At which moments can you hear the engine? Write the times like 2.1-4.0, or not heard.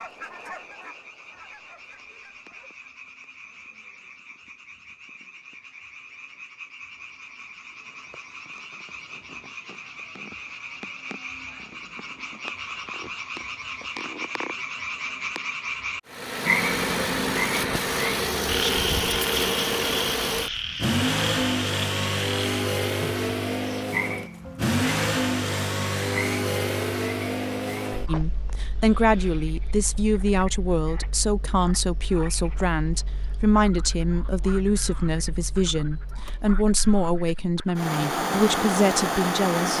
16.1-39.7.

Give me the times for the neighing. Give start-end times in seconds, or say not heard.
not heard.